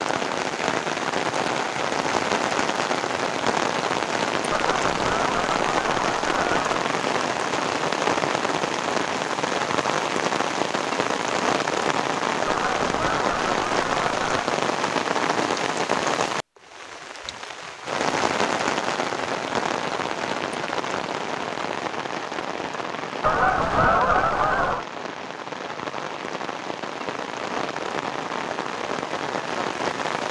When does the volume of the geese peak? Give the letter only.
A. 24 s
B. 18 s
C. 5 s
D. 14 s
A.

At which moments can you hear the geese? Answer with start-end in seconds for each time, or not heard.
4.5-6.8, 12.4-14.5, 23.2-24.9.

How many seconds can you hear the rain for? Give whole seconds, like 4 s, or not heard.
30 s.